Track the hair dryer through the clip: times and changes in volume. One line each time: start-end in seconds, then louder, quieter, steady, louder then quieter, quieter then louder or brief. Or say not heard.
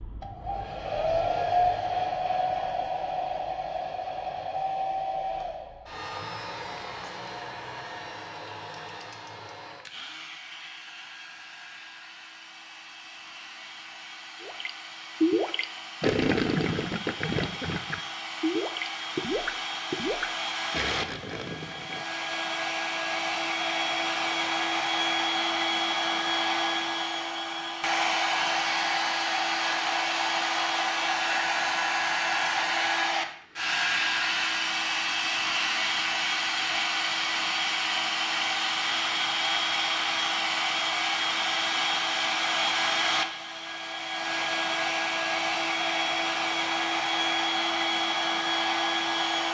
0.0-49.4 quieter then louder.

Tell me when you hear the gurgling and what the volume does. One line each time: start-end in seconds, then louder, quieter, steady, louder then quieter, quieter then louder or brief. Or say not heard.
14.4-22.1 quieter.